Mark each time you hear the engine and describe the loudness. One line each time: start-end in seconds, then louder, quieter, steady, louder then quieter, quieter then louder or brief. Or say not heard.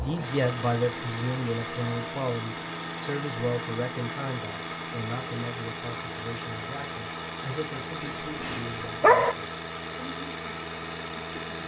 0.0-11.6 steady.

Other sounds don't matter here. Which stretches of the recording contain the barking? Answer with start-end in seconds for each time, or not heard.
8.0-9.3.